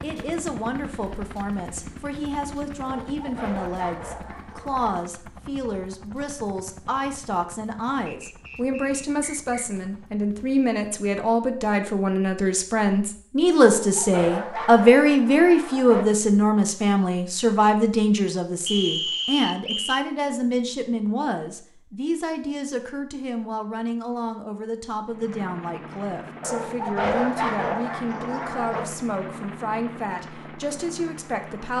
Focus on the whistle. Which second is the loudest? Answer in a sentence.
The loudest moment of the whistle is at 19 seconds.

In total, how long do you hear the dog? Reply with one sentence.
The dog can be heard for 7 seconds in total.